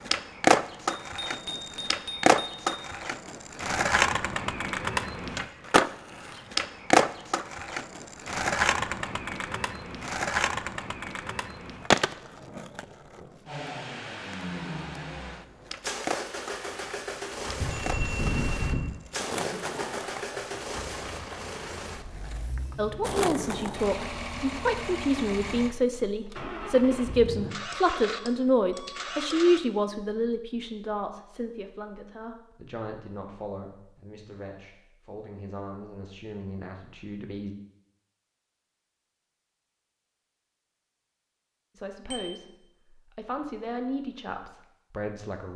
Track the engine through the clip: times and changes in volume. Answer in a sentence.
The engine can be heard from 13.4 to 29.6 s, at a steady volume.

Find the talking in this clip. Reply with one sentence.
The talking can be heard from 22.8 to 37.5 s, from 41.8 to 42.5 s and from 43.1 to 45.5 s.